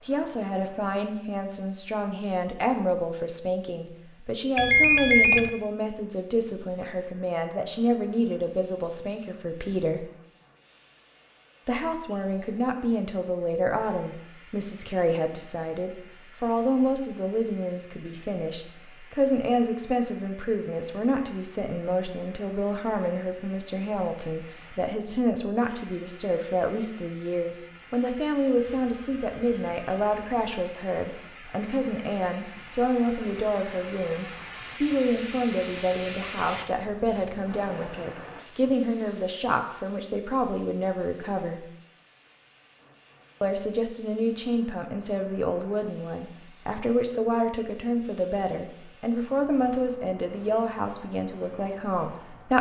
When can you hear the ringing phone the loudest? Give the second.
5 s.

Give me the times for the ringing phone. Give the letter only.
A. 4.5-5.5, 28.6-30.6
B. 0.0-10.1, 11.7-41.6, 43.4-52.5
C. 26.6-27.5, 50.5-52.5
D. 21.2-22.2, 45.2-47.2
A.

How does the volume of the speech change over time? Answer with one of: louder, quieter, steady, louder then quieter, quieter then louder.
steady.